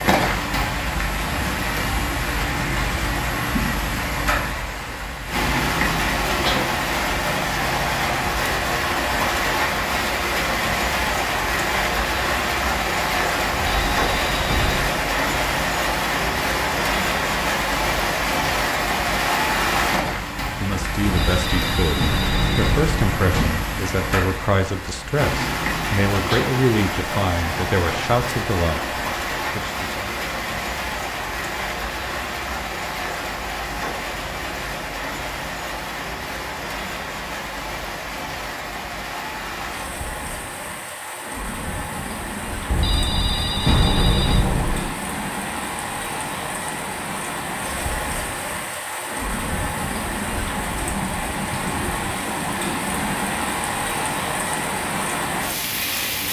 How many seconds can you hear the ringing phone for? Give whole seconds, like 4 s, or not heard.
6 s.